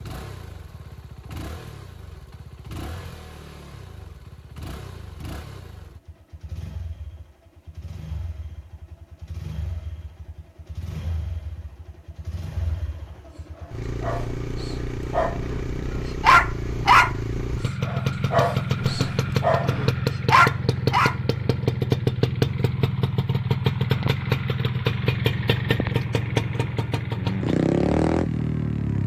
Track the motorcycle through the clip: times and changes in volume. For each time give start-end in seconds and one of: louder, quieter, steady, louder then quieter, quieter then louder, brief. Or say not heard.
0.0-29.0 louder.